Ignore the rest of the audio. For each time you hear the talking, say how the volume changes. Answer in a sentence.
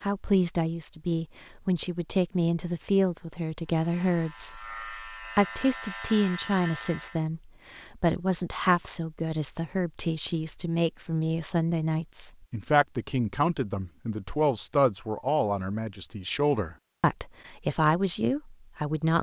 You can hear the talking from 0.0 to 19.1 s, at a steady volume.